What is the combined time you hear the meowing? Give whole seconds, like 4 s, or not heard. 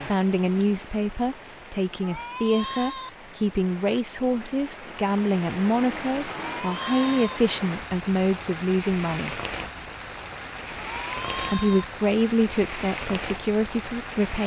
3 s.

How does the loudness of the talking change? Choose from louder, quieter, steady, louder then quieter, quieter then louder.
steady.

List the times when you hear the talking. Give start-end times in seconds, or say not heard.
0.1-9.4, 11.4-14.4.